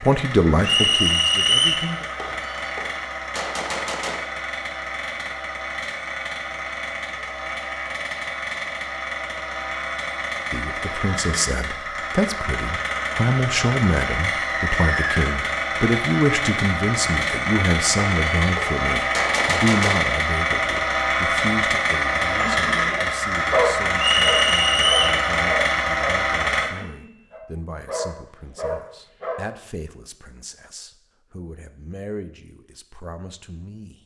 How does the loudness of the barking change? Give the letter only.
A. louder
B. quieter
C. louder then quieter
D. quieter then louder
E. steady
D.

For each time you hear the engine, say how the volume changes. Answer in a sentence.
You can hear the engine from 0.0 to 26.7 s, getting louder.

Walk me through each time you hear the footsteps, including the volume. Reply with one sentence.
The footsteps can't be heard in this clip.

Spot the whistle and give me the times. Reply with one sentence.
The whistle can be heard from 0.6 to 1.9 s, from 14.2 to 15.2 s and from 23.9 to 25.2 s.